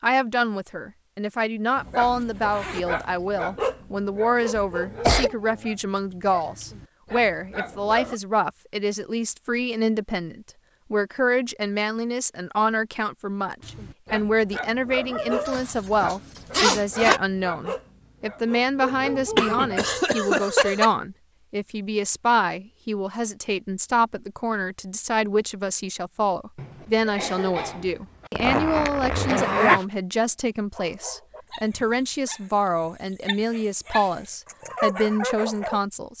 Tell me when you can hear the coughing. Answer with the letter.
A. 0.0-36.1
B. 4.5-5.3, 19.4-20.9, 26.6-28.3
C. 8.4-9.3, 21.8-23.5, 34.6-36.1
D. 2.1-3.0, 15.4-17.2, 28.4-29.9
B.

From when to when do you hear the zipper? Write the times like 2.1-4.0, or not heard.
2.1-3.0, 15.4-17.2, 28.4-29.9.